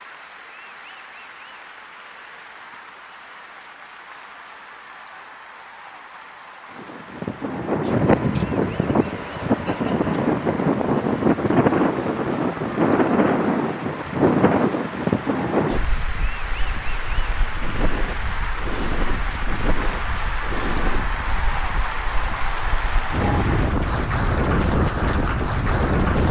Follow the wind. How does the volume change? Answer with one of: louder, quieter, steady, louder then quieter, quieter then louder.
quieter then louder.